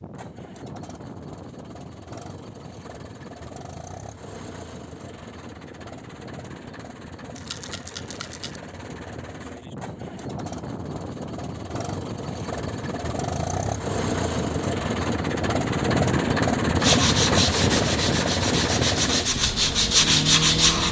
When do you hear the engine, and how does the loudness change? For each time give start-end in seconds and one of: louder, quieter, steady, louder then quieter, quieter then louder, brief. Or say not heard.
0.0-20.8 louder.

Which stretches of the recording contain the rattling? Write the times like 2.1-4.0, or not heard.
7.3-8.6.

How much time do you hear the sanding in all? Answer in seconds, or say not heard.
4 s.